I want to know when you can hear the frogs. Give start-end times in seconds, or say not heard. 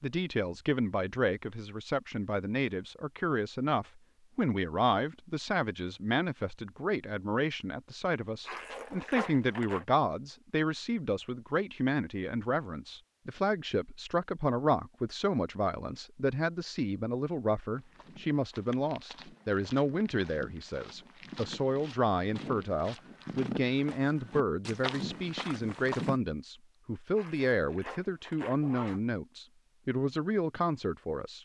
not heard.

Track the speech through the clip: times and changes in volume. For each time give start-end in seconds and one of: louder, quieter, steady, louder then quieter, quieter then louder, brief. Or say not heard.
0.0-31.4 steady.